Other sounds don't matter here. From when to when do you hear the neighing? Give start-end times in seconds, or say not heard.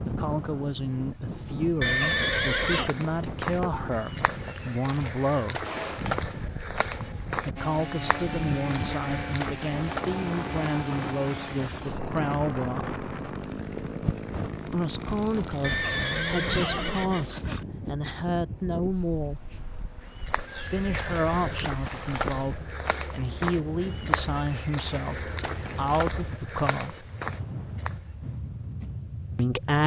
1.8-2.9, 15.6-17.6, 20.4-22.3.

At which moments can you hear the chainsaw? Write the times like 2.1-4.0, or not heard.
7.5-16.9.